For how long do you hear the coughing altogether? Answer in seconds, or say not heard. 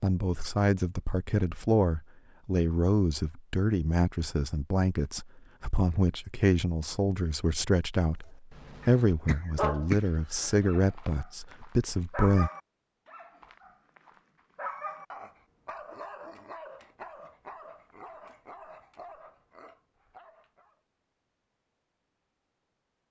2 s.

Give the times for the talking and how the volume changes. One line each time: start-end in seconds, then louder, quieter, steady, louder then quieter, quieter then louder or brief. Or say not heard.
0.0-12.5 steady.